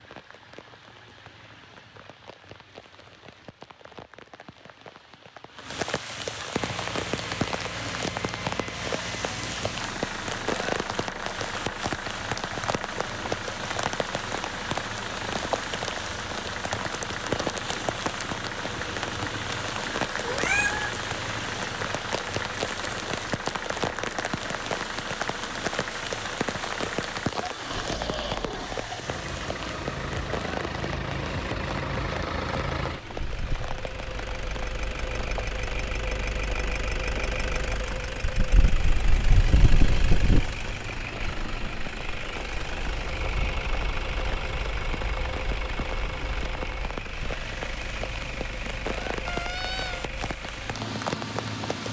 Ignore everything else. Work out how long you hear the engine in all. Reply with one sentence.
The engine can be heard for 45 seconds in total.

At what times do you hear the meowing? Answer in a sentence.
The meowing can be heard from 20.2 to 20.9 s and from 49.2 to 50.1 s.